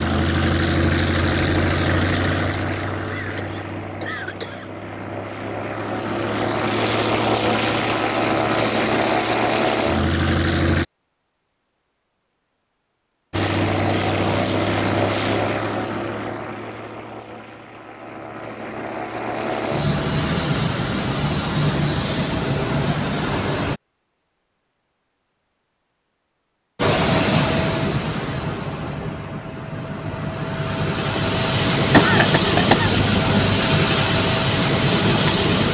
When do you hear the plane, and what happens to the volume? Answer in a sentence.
The plane can be heard from 0.0 to 10.8 s, getting quieter then louder; from 13.3 to 23.8 s, getting quieter then louder; and from 26.8 to 35.6 s, getting quieter then louder.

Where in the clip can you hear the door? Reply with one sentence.
You can't hear the door here.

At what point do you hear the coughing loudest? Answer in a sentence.
The loudest moment of the coughing is at 32 seconds.